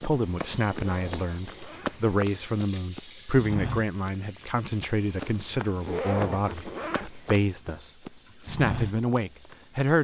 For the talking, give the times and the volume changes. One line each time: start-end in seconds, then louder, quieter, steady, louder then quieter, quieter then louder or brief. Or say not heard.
0.0-9.9 steady.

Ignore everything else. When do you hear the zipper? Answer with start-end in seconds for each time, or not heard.
0.8-2.0, 5.8-7.2.